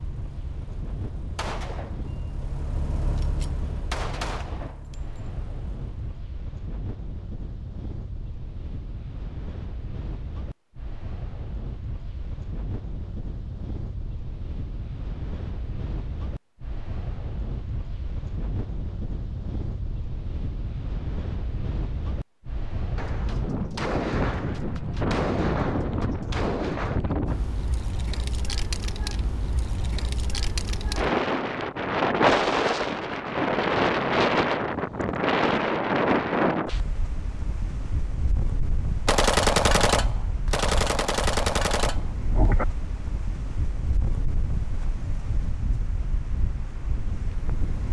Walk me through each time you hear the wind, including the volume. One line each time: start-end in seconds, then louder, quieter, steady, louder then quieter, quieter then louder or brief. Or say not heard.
0.0-47.8 louder then quieter.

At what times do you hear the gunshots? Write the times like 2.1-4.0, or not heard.
1.4-1.9, 3.1-5.0, 22.9-27.0, 39.0-42.6.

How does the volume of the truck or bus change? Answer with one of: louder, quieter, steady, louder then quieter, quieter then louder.
louder then quieter.